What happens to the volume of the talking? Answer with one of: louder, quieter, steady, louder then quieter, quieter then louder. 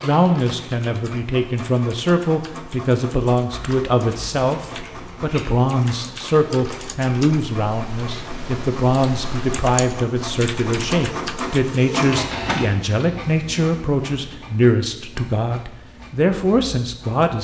steady.